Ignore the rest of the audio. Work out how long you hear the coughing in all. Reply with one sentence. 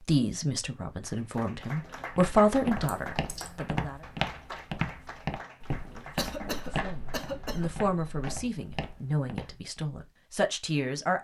You can hear the coughing for 2 seconds altogether.